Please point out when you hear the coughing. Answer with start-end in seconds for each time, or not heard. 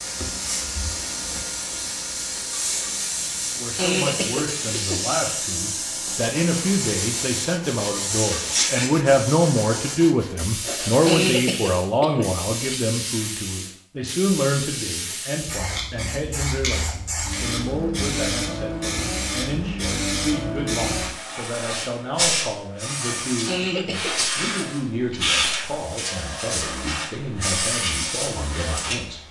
3.8-5.0, 11.1-12.8, 23.4-25.2.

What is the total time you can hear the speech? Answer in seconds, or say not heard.
26 s.